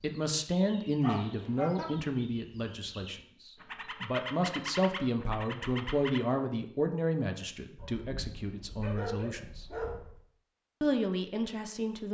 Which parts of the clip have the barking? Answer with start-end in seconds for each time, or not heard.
1.0-1.9, 7.8-10.2.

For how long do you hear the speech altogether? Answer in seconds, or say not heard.
11 s.